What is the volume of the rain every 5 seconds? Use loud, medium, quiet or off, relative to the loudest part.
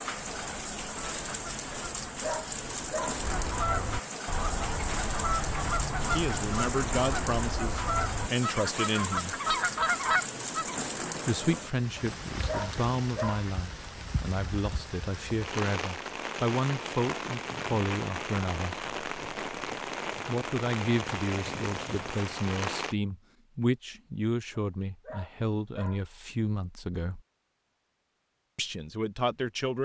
loud, loud, loud, loud, loud, off.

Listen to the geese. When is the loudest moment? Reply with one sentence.
The loudest moment of the geese is at 10 seconds.